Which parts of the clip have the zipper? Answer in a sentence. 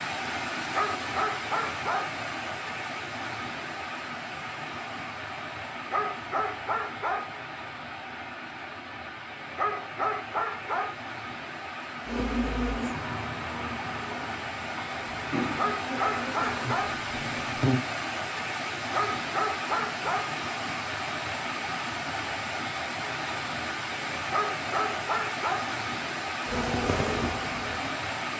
The zipper can't be heard in this clip.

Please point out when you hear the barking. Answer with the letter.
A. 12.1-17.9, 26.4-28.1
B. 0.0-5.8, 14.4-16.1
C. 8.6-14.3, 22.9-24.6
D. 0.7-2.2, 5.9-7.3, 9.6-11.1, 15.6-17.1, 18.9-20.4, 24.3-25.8
D.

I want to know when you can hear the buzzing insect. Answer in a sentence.
You can hear the buzzing insect from 12.1 to 17.9 s and from 26.4 to 28.1 s.